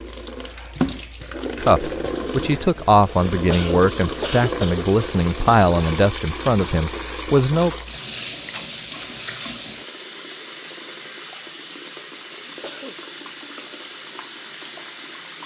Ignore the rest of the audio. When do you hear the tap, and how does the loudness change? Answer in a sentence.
The tap can be heard from 0.0 to 15.4 s, at a steady volume.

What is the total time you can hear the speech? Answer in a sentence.
The speech can be heard for 6 seconds in total.